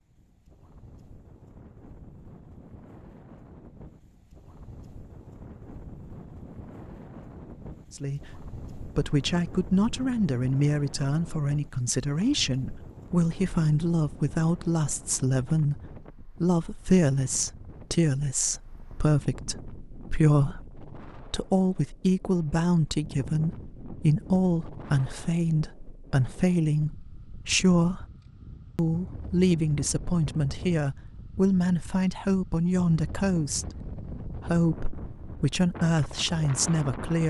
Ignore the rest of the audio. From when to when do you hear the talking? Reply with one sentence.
The talking can be heard from 7.9 to 28.1 s and from 28.8 to 37.2 s.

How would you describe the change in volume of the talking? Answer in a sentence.
The loudness of the talking stays about the same.